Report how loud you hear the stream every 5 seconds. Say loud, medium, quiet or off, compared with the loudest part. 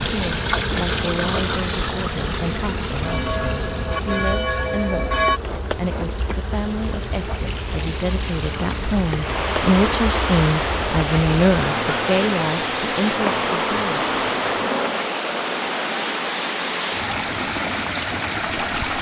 loud, medium, loud, loud.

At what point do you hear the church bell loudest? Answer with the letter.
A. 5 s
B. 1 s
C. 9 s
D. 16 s
A.